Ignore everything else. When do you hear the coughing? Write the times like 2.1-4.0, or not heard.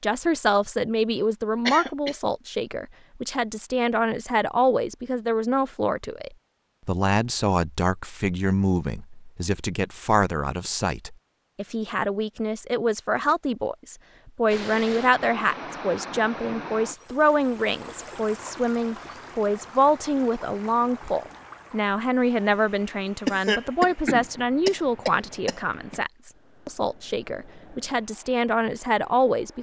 1.6-2.1, 23.2-26.0.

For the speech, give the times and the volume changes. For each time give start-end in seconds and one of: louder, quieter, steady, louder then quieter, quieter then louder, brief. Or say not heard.
0.0-29.5 steady.